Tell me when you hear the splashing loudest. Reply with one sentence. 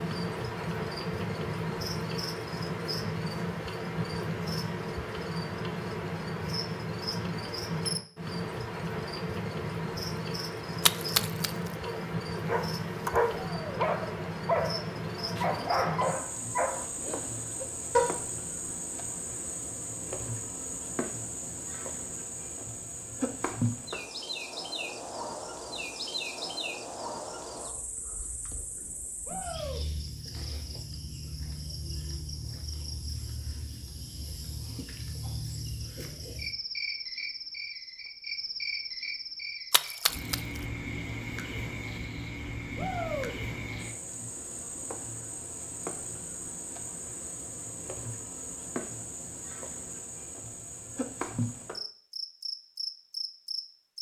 The loudest moment of the splashing is at 11 seconds.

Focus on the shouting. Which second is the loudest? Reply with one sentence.
The volume of the shouting peaks at 43 seconds.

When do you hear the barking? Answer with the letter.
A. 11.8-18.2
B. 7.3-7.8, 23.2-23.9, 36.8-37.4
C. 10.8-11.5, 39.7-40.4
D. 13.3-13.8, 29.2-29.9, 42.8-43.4
A.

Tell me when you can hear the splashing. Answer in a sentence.
The splashing can be heard from 10.8 to 11.5 s and from 39.7 to 40.4 s.